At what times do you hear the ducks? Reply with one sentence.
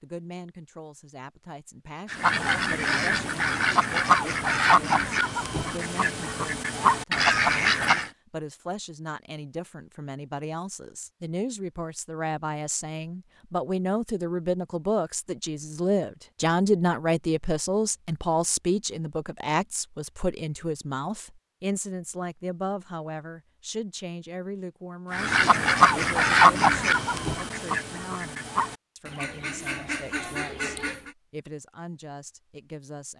The ducks can be heard from 2.1 to 8.1 s and from 25.1 to 31.1 s.